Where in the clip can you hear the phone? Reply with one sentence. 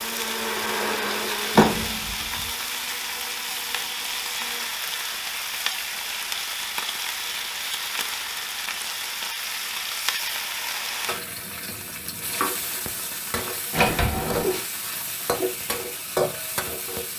You can't hear the phone here.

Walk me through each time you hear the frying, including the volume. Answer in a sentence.
You can hear the frying from 0.0 to 17.1 s, at a steady volume.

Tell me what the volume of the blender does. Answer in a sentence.
The volume of the blender goes down.